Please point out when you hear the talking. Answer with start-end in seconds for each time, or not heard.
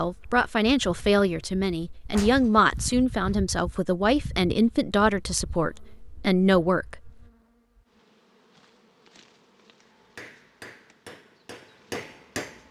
0.0-7.1.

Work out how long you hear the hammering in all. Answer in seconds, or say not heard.
3 s.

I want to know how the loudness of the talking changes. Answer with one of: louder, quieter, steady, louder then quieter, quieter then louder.
steady.